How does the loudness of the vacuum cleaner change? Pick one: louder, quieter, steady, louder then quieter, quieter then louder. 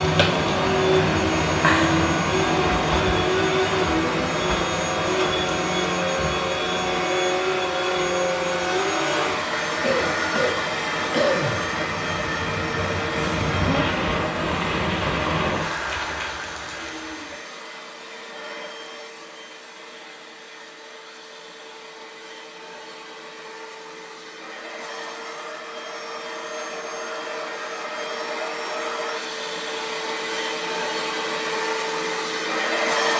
quieter then louder.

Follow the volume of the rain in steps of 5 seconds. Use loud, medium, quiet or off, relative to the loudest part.
loud, medium, loud, loud, off, off, off.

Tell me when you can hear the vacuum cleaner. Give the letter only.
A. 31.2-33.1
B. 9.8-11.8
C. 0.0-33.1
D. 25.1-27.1
C.